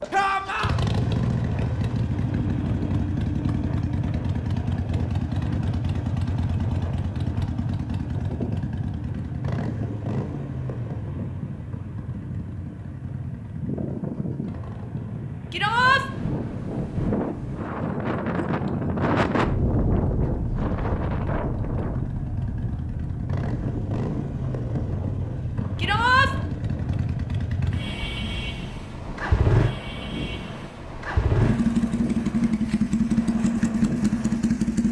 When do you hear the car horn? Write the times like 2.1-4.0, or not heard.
not heard.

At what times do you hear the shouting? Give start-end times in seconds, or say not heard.
0.1-0.8, 15.5-16.1, 25.8-26.3.